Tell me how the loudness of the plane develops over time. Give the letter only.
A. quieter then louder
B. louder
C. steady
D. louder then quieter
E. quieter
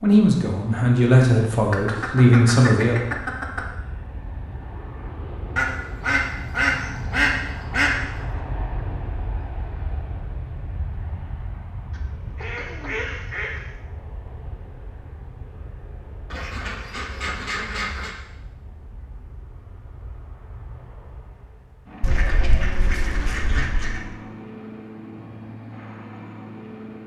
A.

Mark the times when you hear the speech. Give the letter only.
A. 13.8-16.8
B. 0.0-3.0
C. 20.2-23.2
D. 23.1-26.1
B.